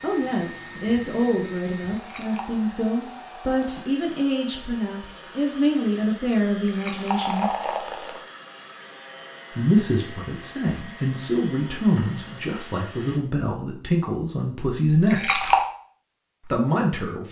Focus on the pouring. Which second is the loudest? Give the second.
15 s.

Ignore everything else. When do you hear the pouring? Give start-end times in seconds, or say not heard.
1.9-2.5, 6.5-8.2, 14.8-15.7.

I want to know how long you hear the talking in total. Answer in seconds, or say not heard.
14 s.